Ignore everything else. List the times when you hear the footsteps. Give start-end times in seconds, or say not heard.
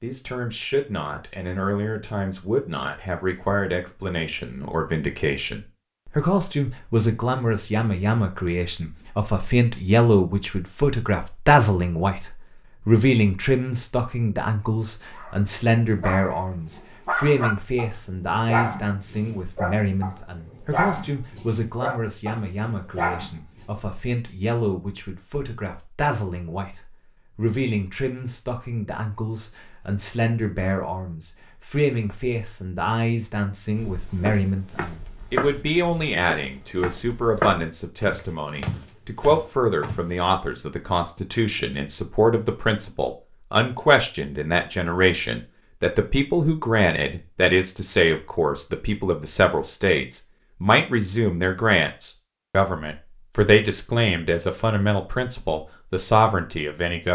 33.8-40.0.